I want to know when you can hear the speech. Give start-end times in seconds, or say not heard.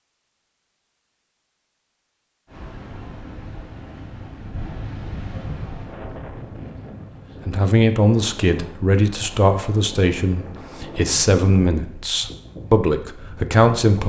7.5-14.0.